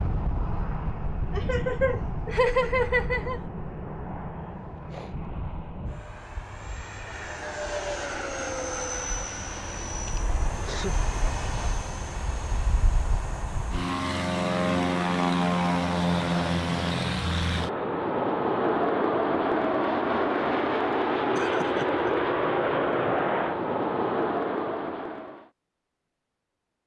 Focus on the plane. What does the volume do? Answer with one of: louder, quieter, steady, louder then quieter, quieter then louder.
louder.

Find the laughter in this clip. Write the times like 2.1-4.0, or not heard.
1.3-3.4, 10.1-11.0, 21.4-22.1.